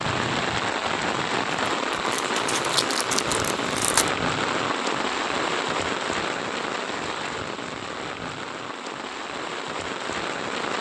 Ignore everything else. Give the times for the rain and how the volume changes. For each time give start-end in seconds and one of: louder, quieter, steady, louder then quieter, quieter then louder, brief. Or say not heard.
0.0-10.7 quieter.